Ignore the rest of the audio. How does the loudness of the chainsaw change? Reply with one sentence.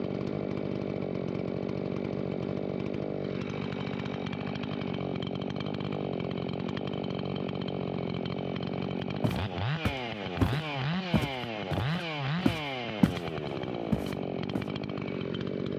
The volume of the chainsaw stays about the same.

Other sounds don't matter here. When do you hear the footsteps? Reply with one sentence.
The footsteps can be heard from 9.2 to 13.2 s and from 13.9 to 14.7 s.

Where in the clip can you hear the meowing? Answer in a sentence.
The meowing can't be heard in this clip.